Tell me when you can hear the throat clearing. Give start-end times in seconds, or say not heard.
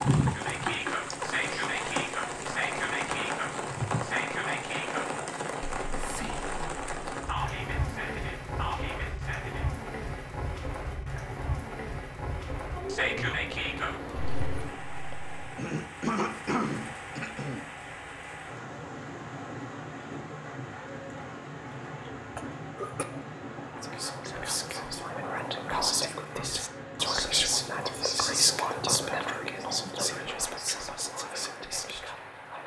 1.1-1.6, 15.6-17.6, 22.4-23.1.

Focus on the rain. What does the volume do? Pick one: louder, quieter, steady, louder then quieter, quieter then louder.
quieter.